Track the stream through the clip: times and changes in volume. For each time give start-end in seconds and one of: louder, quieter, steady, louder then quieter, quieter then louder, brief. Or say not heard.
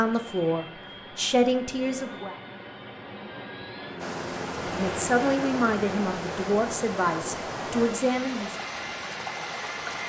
4.0-10.0 steady.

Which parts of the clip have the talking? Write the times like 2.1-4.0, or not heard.
0.0-2.4, 4.8-8.6.